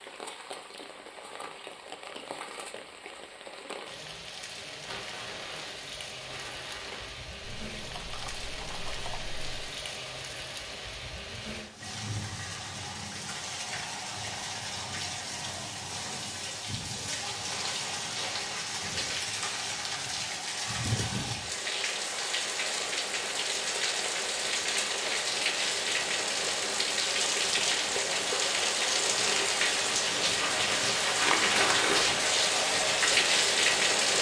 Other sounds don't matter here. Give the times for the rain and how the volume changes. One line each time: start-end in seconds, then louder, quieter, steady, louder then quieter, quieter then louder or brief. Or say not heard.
0.0-34.1 louder.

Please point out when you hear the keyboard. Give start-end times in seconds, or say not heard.
7.4-9.8.